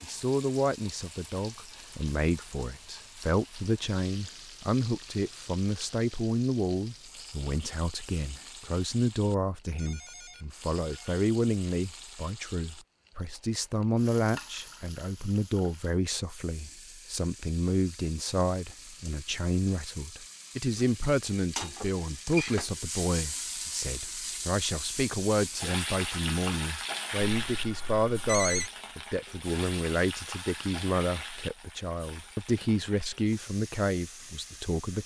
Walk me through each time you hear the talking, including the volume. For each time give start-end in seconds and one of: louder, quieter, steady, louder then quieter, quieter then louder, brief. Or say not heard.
0.0-35.0 steady.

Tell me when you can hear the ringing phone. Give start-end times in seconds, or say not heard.
9.8-11.2, 27.4-28.7.